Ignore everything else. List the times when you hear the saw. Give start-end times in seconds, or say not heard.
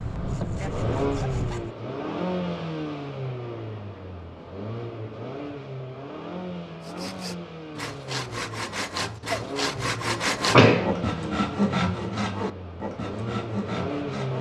0.0-1.7, 6.8-14.3.